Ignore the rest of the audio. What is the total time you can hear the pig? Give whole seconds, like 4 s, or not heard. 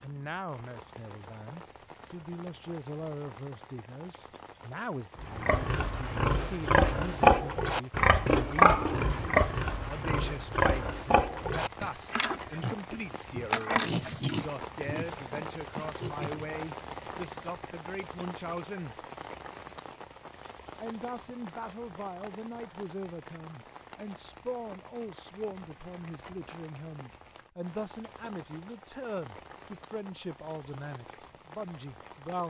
11 s.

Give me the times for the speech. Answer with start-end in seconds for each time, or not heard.
0.0-8.8, 9.8-18.9, 20.8-32.4.